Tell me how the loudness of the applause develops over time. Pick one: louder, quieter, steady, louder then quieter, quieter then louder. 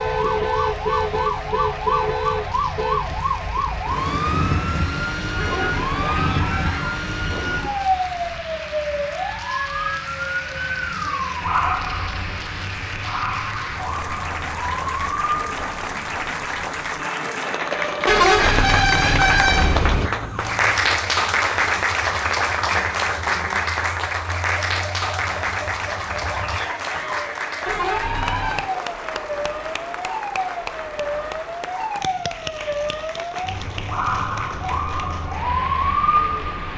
louder then quieter.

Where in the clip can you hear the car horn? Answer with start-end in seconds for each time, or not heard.
5.3-6.8, 18.1-20.1, 27.6-28.7.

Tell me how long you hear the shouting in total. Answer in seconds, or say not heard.
2 s.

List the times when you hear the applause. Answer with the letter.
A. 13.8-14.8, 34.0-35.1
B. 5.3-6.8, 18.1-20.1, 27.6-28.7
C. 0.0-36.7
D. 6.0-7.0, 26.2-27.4
C.